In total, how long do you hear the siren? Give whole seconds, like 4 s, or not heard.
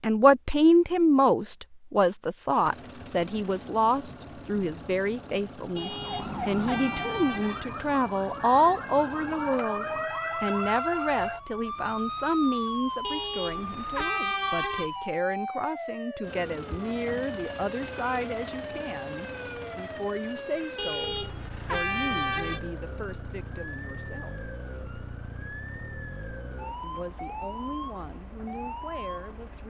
24 s.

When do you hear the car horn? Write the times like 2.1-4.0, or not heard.
5.8-7.7, 13.0-14.9, 20.8-22.6.